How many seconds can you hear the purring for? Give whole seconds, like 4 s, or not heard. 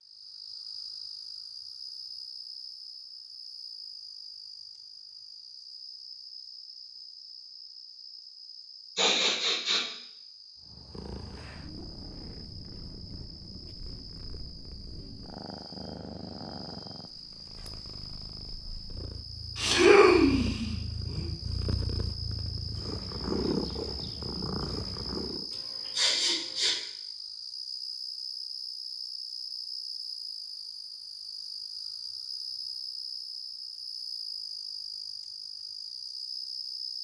15 s.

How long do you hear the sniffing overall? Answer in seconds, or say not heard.
4 s.